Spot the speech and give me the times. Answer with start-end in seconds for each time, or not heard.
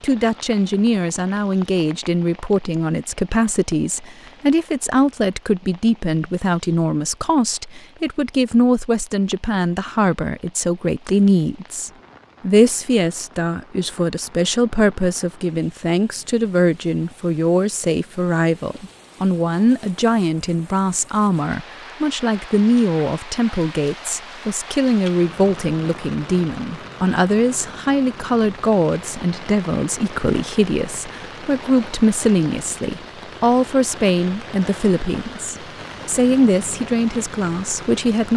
0.0-38.3.